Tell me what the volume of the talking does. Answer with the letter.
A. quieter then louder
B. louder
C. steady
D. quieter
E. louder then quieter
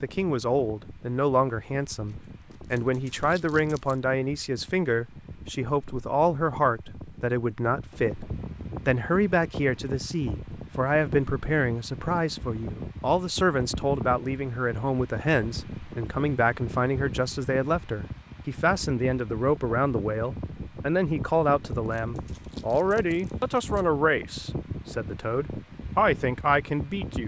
C.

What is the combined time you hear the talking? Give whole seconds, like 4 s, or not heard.
27 s.